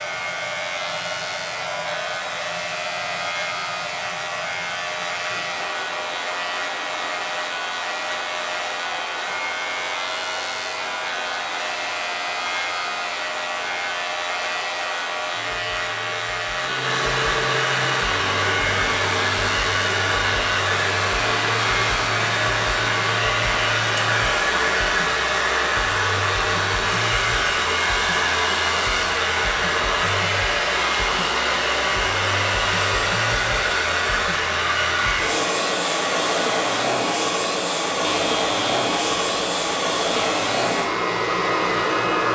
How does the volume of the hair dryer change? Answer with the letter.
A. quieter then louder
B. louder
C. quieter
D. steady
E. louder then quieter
B.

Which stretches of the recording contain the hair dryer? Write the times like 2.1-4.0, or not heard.
0.0-42.3.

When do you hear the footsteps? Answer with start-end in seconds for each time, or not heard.
not heard.